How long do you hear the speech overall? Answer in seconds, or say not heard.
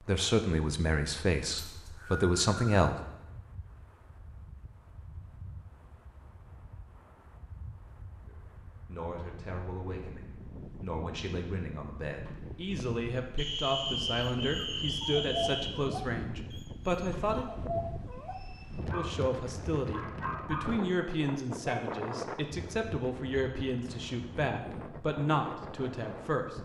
20 s.